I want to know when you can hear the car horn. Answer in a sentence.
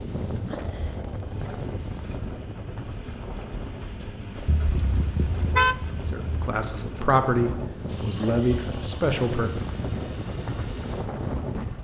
You can hear the car horn from 4.5 to 6.5 s.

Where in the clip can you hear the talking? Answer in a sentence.
The talking can be heard from 6.1 to 9.6 s.